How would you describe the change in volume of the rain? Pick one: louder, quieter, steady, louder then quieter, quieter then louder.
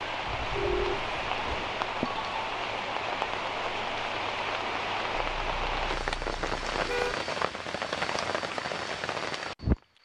steady.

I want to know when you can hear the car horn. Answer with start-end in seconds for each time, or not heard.
0.2-1.3, 5.3-7.2.